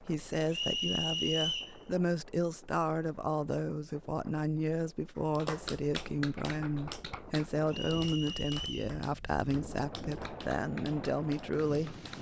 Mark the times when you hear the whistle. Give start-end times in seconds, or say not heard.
0.5-1.8, 7.7-8.9.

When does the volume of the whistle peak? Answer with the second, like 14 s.
1 s.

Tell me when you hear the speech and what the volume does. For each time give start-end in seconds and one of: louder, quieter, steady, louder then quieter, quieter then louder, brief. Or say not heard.
0.0-12.0 steady.